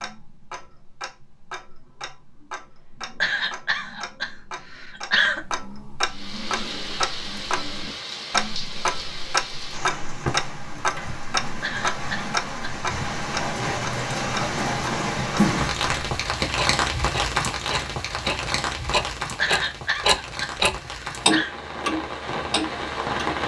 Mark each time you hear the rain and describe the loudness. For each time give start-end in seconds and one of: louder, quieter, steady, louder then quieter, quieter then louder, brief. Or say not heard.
6.0-23.4 louder then quieter.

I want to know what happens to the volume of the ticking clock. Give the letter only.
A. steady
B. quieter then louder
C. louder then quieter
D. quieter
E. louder
E.